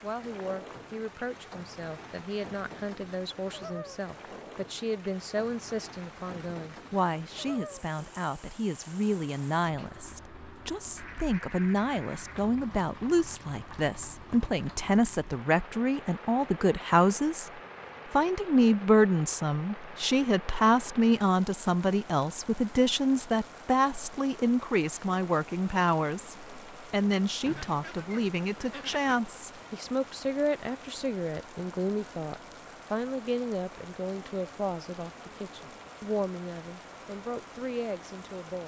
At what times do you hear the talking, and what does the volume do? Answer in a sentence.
The talking can be heard from 0.0 to 17.5 s, getting louder; and from 18.1 to 38.6 s, getting quieter.